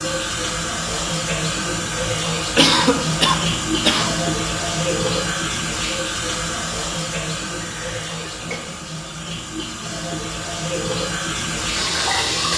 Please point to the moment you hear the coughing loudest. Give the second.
3 s.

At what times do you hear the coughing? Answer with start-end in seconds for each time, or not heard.
2.4-4.2, 7.6-8.6.